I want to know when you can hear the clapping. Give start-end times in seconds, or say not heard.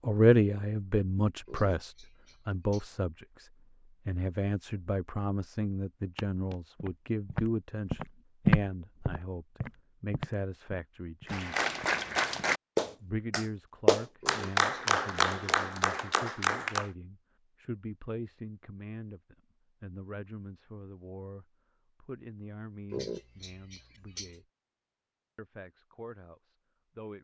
11.2-16.9.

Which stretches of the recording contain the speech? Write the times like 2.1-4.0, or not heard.
0.0-11.6, 13.0-24.4, 25.4-27.1.